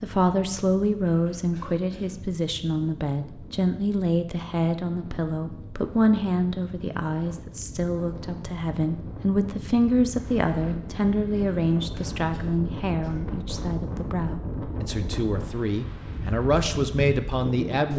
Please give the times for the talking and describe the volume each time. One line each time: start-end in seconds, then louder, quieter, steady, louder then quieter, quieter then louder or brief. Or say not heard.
0.0-17.9 steady.